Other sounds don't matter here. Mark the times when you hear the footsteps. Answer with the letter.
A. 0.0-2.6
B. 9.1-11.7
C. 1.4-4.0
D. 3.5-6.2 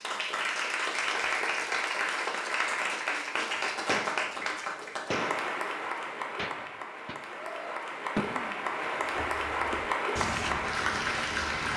B.